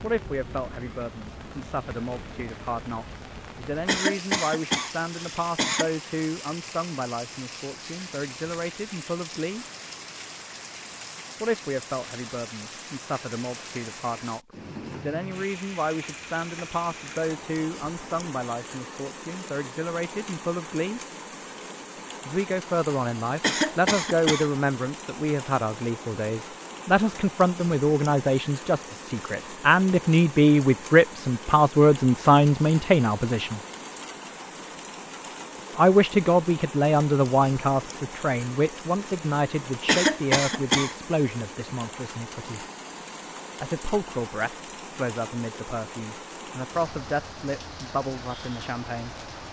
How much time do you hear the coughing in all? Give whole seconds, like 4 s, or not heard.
4 s.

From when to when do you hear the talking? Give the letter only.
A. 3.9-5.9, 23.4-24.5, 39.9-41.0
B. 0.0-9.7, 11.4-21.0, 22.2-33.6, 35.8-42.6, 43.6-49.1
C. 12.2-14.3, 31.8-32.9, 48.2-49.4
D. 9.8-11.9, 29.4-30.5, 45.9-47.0
B.